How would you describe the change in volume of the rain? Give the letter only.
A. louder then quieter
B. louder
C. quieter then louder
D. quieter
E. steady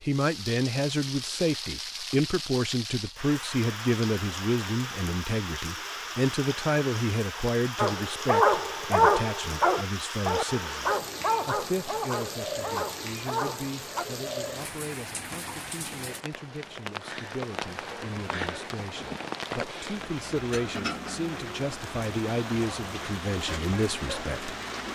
E.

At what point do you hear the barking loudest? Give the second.
9 s.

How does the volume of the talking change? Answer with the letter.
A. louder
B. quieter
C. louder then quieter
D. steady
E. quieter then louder
E.